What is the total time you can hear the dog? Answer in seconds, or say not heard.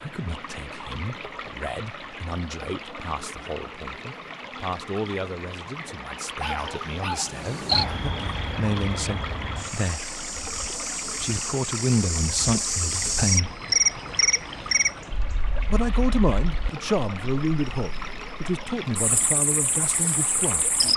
2 s.